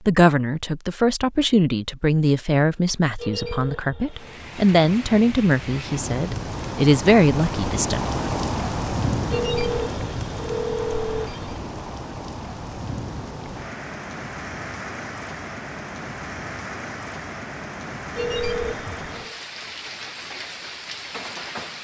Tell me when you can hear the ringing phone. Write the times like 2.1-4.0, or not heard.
3.1-4.3, 9.3-11.6, 18.1-19.4.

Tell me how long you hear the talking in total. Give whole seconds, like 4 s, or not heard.
8 s.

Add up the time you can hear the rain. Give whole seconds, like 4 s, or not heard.
18 s.